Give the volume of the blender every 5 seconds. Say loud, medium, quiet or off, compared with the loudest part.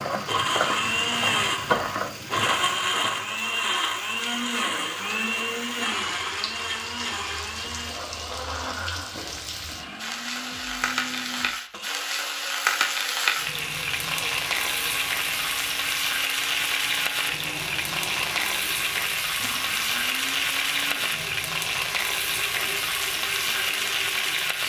loud, medium, quiet, quiet, quiet.